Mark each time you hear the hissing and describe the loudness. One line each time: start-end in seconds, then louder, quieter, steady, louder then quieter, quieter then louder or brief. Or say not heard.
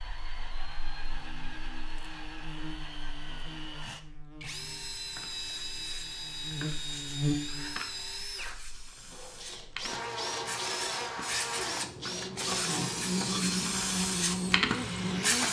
5.0-15.4 louder.